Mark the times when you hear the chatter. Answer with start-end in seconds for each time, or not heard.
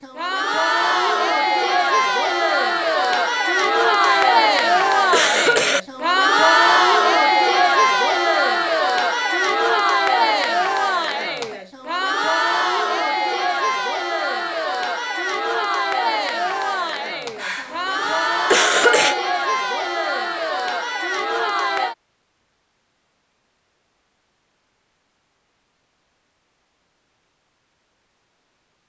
0.0-21.9.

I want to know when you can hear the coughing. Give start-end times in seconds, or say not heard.
4.0-5.8, 17.4-19.1.